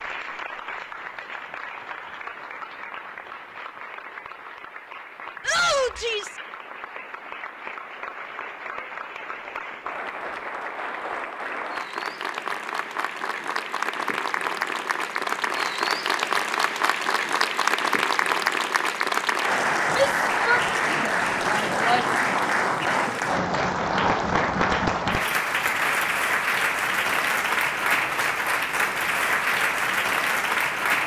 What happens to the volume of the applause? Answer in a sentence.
The loudness of the applause goes up.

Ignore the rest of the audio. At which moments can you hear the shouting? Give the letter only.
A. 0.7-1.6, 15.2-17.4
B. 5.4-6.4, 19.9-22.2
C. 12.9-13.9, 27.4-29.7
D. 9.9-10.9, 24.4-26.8
B.